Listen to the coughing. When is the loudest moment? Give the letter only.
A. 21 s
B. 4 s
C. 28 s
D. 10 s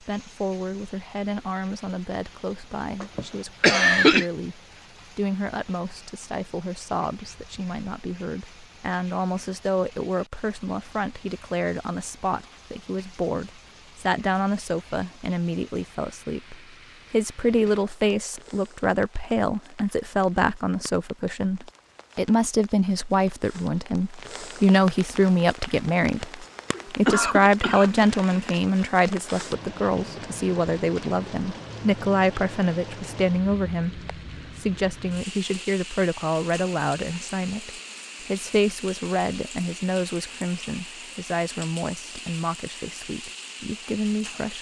B.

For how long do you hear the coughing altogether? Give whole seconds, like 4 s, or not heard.
3 s.